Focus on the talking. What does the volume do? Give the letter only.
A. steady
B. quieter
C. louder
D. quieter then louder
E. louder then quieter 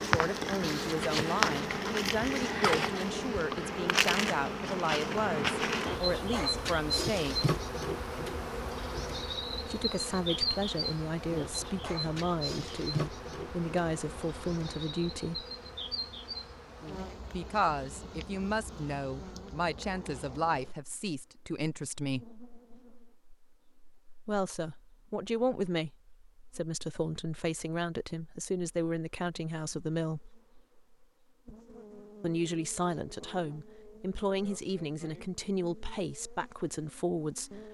A.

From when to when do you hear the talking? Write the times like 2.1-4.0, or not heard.
0.0-7.3, 9.7-15.4, 17.3-22.3, 24.2-30.3, 32.2-37.5.